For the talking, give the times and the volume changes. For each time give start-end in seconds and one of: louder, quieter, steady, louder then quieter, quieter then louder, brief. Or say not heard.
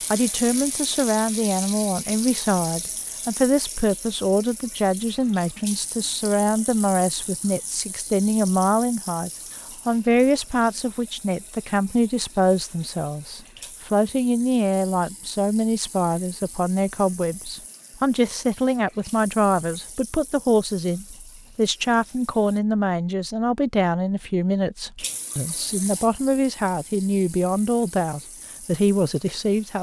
0.1-29.7 steady.